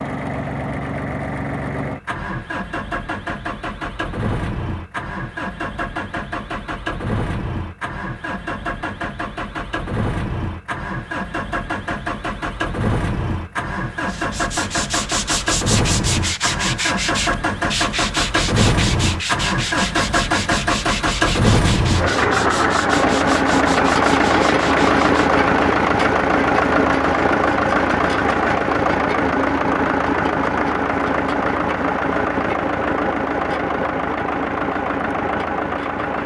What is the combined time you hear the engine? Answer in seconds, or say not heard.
36 s.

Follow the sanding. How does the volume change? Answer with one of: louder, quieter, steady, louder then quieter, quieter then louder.
quieter.